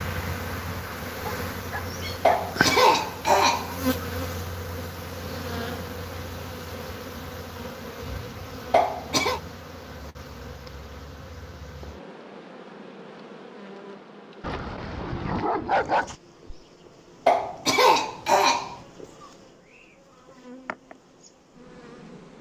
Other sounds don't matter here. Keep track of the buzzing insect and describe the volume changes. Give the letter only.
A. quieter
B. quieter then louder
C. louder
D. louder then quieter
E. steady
A.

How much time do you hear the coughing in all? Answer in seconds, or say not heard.
4 s.